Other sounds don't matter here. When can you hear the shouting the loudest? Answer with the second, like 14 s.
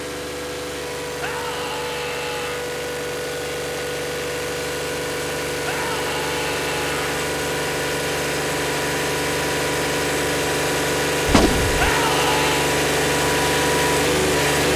12 s.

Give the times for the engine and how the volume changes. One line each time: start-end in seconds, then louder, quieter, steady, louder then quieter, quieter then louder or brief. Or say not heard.
0.0-14.7 louder.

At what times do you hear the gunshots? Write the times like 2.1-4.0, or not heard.
11.2-11.9.